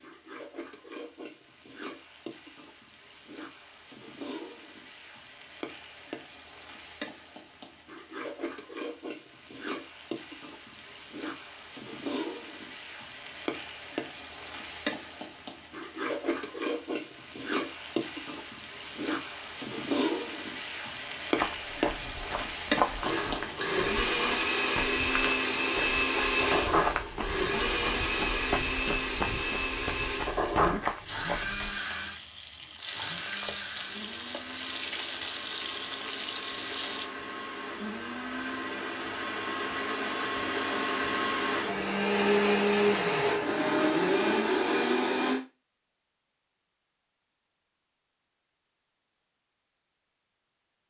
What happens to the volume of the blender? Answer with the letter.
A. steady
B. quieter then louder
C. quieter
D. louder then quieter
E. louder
B.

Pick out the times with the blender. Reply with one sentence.
You can hear the blender from 23.0 to 45.4 s.